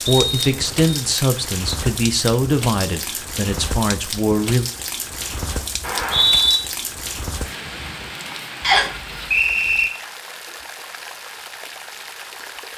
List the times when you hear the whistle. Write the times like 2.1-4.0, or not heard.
0.1-0.9, 5.8-6.6, 8.6-9.9.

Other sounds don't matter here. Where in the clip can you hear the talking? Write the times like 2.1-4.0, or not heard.
0.0-4.7.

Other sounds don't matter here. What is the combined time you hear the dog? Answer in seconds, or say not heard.
not heard.